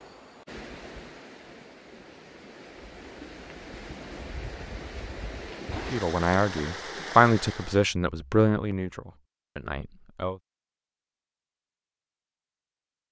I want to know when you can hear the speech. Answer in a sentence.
The speech can be heard from 5.9 to 10.3 s.